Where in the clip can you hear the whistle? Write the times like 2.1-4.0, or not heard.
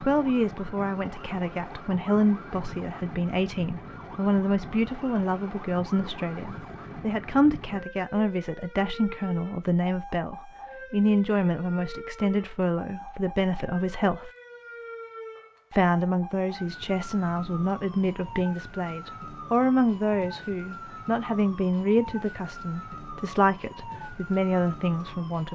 not heard.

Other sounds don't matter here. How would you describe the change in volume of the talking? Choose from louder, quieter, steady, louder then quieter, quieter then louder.
steady.